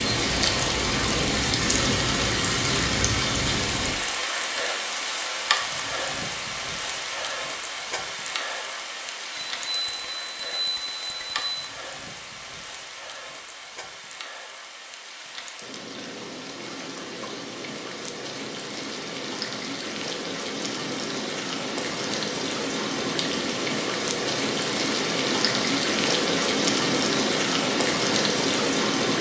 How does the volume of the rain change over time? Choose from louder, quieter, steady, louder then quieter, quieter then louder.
quieter then louder.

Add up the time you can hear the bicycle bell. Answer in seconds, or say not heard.
2 s.